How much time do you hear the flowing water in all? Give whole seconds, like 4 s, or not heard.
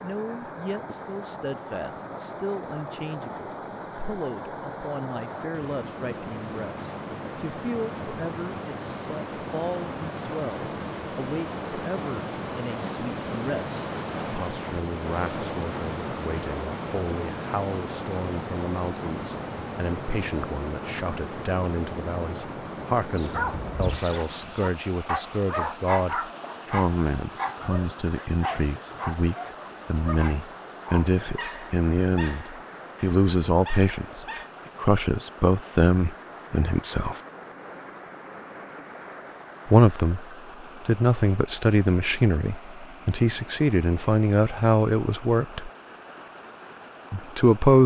48 s.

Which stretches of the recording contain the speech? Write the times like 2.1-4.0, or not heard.
0.0-37.2, 39.6-40.2, 40.9-45.7, 47.1-47.8.